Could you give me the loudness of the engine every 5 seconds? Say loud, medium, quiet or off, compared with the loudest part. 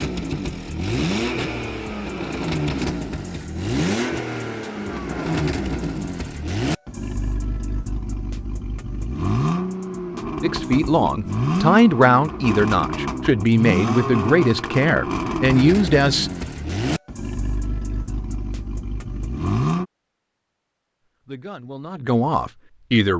loud, loud, loud, loud, off.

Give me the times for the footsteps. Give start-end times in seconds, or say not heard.
not heard.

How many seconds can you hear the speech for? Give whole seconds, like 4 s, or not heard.
8 s.